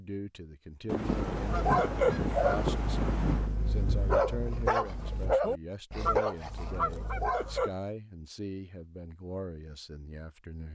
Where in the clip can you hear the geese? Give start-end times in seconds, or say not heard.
0.8-3.5, 6.0-7.7.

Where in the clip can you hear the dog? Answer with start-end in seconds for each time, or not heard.
1.1-7.7.